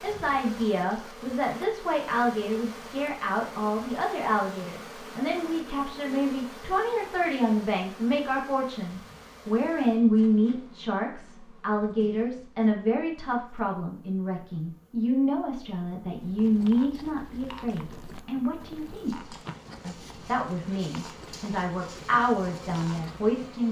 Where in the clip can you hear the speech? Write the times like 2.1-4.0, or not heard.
0.0-23.6.